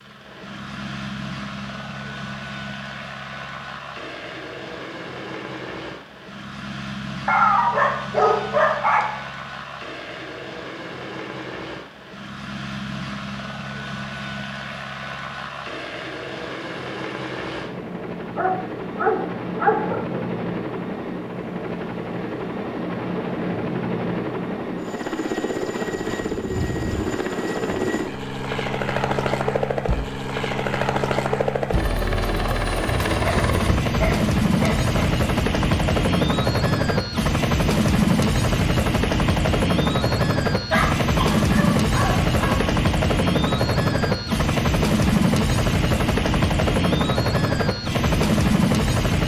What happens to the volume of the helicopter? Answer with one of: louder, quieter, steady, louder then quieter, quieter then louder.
louder.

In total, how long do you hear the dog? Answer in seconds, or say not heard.
8 s.